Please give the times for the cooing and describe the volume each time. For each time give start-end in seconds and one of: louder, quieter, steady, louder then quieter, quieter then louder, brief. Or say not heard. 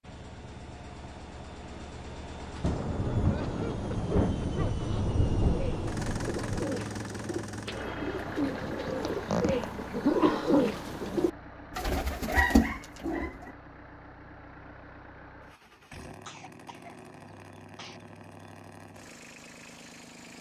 5.5-13.5 louder.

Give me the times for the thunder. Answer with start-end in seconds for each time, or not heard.
2.6-6.7.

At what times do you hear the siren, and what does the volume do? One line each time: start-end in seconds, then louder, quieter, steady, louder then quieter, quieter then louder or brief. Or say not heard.
not heard.